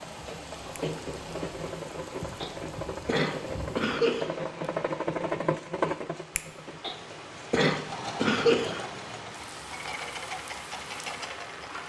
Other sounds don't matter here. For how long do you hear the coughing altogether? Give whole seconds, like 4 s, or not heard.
4 s.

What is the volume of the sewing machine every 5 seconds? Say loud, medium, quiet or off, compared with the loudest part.
loud, loud, medium.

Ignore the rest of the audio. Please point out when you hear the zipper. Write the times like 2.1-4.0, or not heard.
not heard.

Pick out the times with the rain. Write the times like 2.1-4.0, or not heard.
0.0-11.8.